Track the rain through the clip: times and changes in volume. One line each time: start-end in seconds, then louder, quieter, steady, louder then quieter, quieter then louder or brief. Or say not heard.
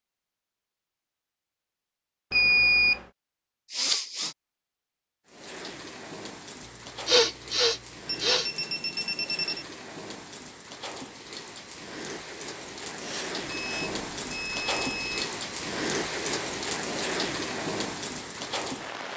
5.2-19.1 louder.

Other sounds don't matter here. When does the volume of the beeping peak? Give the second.
3 s.